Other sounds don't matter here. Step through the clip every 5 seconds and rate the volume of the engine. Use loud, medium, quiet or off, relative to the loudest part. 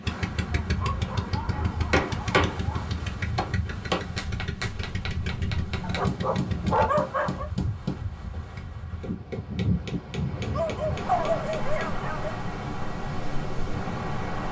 loud, loud, off.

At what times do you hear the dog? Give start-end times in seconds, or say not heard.
0.6-3.0, 5.8-7.5, 10.5-12.3.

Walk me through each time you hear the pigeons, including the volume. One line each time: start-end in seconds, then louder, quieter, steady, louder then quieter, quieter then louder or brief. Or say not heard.
not heard.